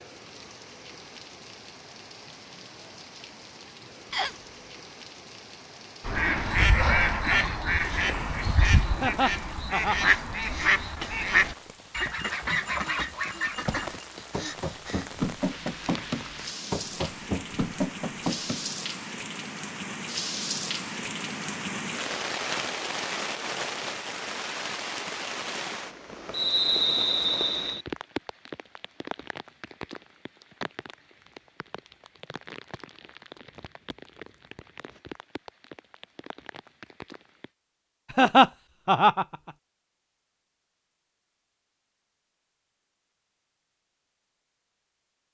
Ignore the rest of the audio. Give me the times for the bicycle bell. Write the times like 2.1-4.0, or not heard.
not heard.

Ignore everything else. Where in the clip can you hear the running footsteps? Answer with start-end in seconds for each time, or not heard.
13.6-18.6.